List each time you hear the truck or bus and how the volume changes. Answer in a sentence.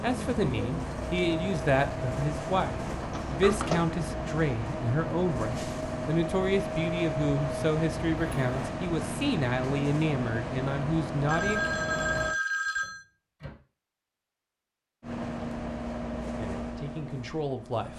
The truck or bus can be heard from 0.0 to 12.3 s, at a steady volume; and briefly from 15.0 to 17.9 s.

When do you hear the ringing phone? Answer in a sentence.
The ringing phone can be heard from 11.2 to 13.1 s.